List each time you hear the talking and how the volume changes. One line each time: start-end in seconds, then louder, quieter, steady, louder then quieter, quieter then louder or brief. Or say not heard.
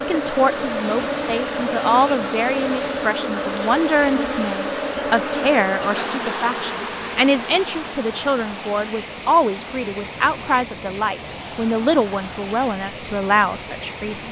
0.1-14.2 steady.